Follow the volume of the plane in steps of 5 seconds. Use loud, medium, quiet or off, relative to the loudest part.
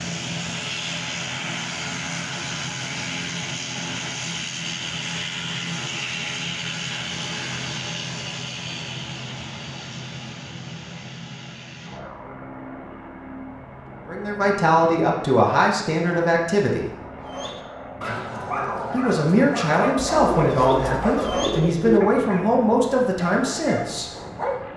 loud, loud, medium, medium, medium.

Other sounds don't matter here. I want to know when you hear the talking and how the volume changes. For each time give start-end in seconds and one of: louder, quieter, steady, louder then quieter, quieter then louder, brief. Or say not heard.
14.1-16.9 brief
18.9-24.1 steady.